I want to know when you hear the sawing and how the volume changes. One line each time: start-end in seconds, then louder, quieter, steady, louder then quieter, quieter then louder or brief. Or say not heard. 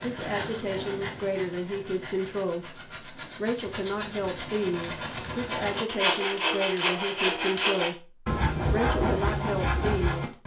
0.0-10.4 louder.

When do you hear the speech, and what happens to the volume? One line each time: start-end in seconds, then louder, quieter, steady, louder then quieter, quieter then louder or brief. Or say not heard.
0.0-10.3 steady.